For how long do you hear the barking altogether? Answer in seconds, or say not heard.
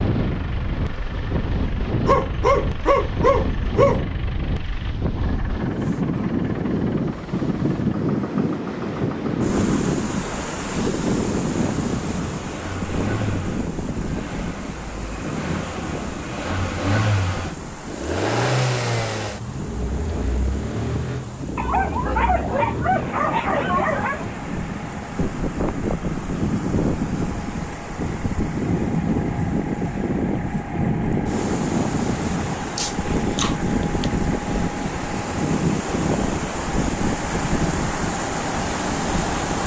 6 s.